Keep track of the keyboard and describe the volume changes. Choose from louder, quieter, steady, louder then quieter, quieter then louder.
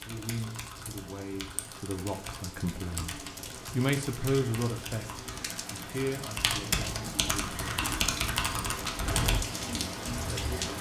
louder.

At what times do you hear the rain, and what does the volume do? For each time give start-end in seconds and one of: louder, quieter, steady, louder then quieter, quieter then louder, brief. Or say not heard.
0.0-10.7 louder.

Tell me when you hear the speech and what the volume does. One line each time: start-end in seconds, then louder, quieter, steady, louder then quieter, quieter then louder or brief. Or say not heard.
0.1-7.6 louder then quieter
9.7-10.7 brief.